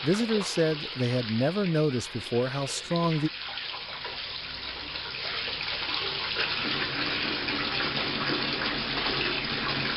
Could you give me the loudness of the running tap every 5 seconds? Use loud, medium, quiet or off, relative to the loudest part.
medium, loud.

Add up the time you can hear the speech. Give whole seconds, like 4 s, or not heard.
3 s.